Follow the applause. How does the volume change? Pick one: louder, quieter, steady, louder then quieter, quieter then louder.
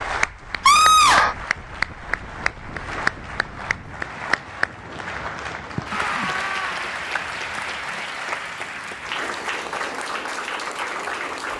steady.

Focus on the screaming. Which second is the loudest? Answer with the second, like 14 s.
1 s.